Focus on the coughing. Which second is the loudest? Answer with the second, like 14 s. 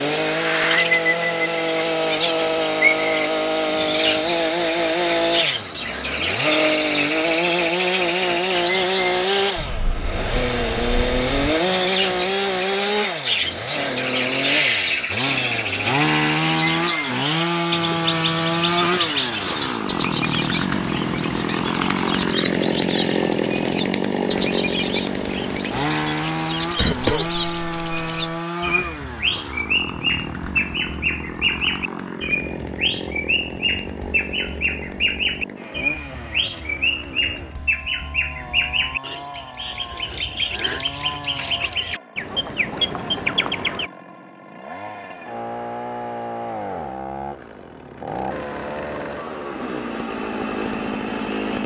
27 s.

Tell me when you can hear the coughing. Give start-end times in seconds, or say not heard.
26.8-28.4.